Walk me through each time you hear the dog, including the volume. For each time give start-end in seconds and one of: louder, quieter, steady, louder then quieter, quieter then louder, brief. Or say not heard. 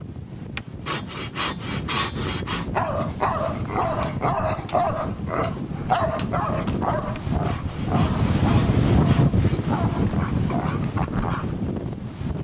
2.5-11.6 quieter.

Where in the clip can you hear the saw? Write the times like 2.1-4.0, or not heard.
0.6-2.6, 7.2-9.8.